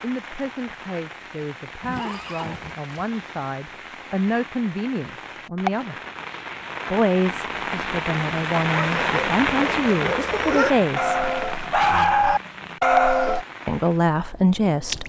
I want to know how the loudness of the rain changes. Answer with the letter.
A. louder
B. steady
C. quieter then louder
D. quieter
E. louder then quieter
E.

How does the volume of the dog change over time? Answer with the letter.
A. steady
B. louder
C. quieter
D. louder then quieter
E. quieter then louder
B.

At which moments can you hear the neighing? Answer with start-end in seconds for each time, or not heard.
1.8-3.1.